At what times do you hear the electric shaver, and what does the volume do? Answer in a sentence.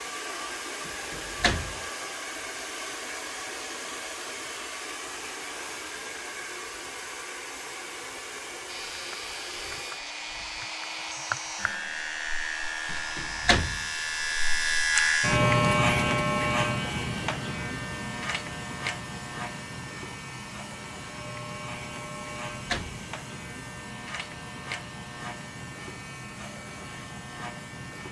The electric shaver can be heard from 8.7 to 28.0 s, getting louder then quieter.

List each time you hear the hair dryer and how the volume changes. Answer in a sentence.
You can hear the hair dryer from 0.0 to 28.0 s, getting quieter.